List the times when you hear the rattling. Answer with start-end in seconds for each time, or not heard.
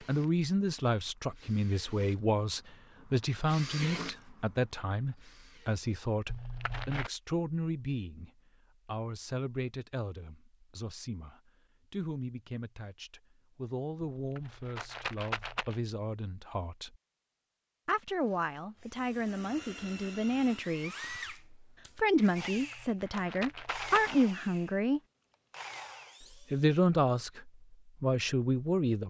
6.2-7.1, 14.2-15.8, 22.6-24.2.